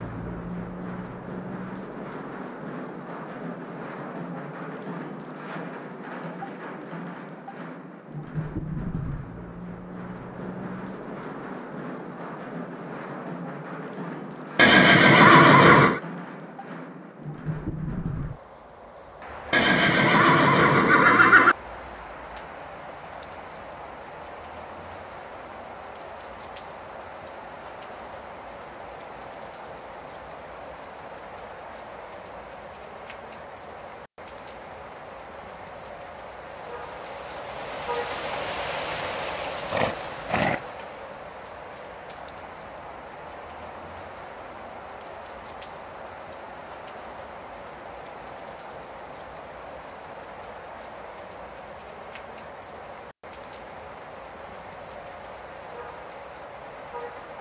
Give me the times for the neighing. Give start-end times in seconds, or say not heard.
14.6-16.0, 19.5-21.6, 39.7-40.6.